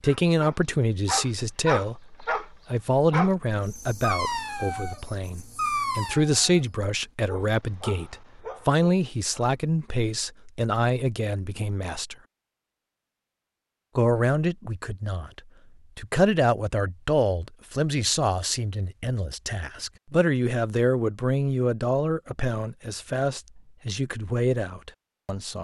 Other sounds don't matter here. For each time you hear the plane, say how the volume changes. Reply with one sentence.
The plane can't be heard in this clip.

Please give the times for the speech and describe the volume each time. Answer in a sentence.
You can hear the speech from 0.0 to 12.2 s, at a steady volume; and from 13.9 to 25.5 s, at a steady volume.